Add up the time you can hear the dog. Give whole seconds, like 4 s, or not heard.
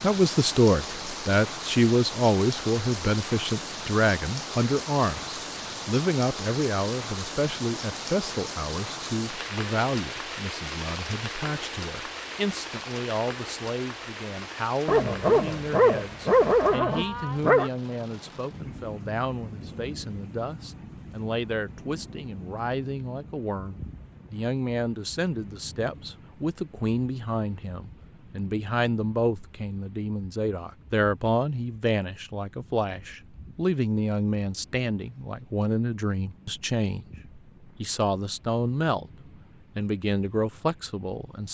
3 s.